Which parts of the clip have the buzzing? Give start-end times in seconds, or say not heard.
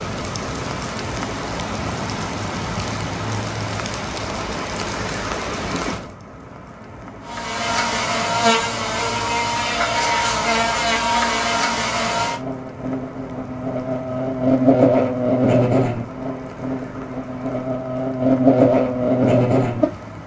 7.2-20.2.